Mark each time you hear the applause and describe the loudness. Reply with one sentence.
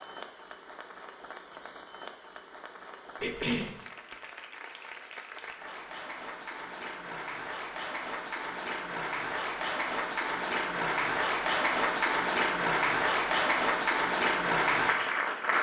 The applause can be heard from 0.0 to 15.5 s, getting louder.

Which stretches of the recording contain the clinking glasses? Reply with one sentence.
The clinking glasses can't be heard in this clip.